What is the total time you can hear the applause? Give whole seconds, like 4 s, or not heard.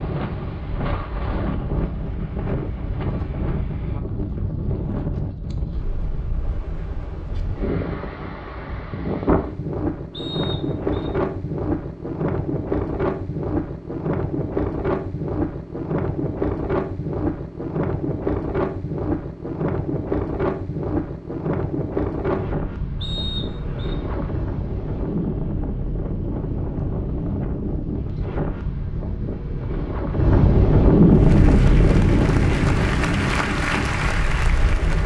4 s.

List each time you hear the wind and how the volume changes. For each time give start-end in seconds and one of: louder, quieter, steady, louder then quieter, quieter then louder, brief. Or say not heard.
0.0-35.0 louder.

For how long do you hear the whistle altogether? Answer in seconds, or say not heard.
2 s.